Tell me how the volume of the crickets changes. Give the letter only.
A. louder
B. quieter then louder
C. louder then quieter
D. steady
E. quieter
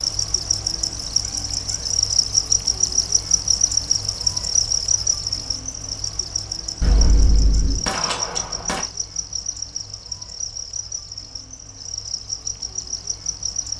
E.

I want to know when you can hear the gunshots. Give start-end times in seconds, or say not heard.
6.8-8.8.